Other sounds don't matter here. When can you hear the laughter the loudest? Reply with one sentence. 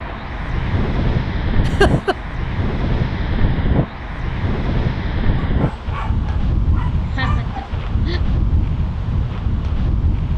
The volume of the laughter peaks at 2 seconds.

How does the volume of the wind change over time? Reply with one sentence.
The volume of the wind stays about the same.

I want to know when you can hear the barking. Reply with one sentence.
The barking can be heard from 5.4 to 7.8 s.